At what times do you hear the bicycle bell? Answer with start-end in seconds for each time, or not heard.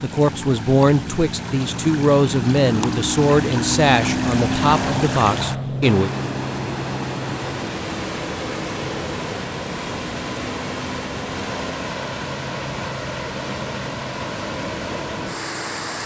not heard.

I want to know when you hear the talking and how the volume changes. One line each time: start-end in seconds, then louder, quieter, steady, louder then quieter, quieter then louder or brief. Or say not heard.
0.0-6.1 steady.